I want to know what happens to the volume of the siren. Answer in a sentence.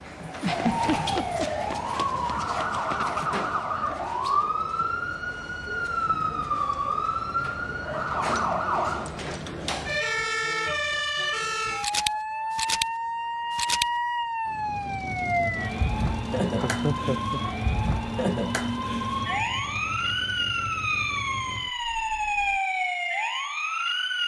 The loudness of the siren stays about the same.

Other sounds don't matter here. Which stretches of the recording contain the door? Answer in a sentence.
The door can't be heard in this clip.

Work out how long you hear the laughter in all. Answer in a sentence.
You can hear the laughter for 2 seconds altogether.